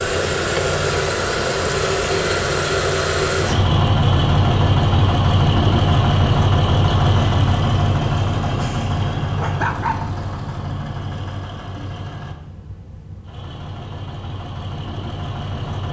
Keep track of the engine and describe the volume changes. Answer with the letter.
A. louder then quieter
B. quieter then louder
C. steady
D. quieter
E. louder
D.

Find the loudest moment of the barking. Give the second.
10 s.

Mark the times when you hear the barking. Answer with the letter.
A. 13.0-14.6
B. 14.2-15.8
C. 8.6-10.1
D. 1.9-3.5
C.